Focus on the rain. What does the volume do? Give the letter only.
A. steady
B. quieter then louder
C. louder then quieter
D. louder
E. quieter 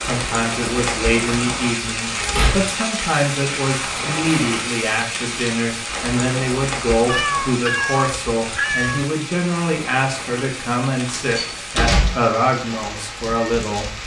E.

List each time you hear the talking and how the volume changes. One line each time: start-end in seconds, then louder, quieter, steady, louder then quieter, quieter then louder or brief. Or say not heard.
0.0-13.9 steady.